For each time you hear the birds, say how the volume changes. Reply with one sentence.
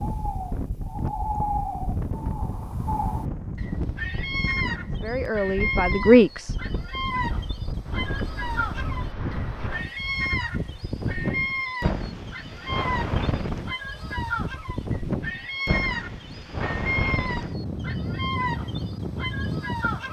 You can hear the birds from 0.0 to 20.0 s, at a steady volume.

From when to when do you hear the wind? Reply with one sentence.
You can hear the wind from 0.0 to 20.0 s.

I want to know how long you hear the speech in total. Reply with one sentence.
You can hear the speech for 2 seconds altogether.